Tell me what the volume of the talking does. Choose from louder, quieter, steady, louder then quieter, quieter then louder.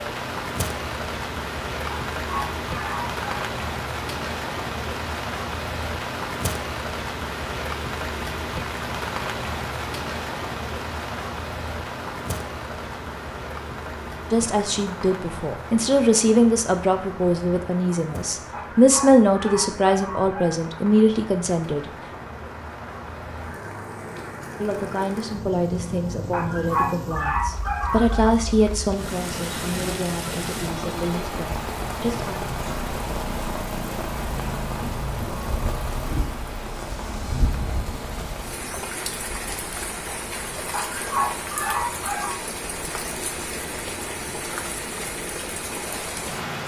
quieter.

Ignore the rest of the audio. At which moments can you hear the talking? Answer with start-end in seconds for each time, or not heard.
14.3-21.9, 24.6-32.4.